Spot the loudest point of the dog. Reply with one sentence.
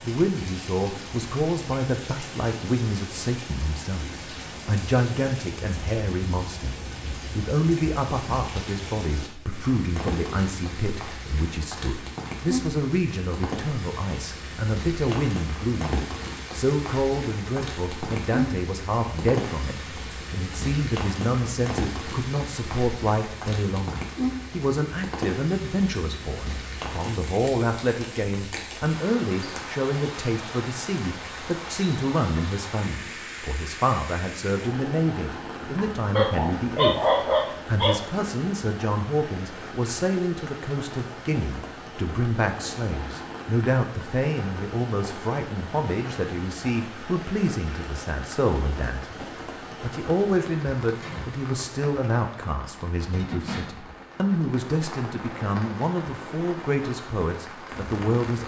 The loudest moment of the dog is at 37 seconds.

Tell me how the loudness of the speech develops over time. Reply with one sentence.
The volume of the speech stays about the same.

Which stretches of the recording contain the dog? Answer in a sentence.
You can hear the dog from 35.6 to 38.0 s.